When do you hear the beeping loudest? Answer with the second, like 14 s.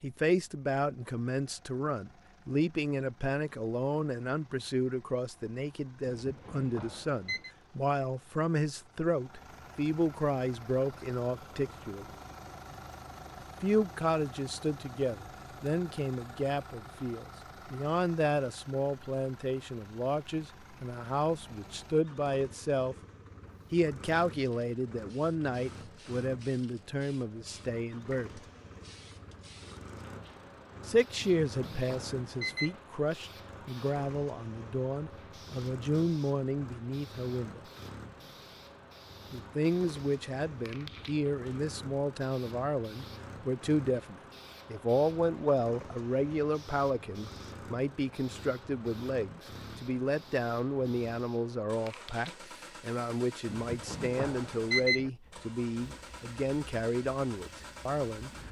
55 s.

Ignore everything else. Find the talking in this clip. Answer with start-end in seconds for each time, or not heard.
0.0-12.1, 13.4-22.9, 23.7-28.4, 30.9-37.6, 39.3-58.3.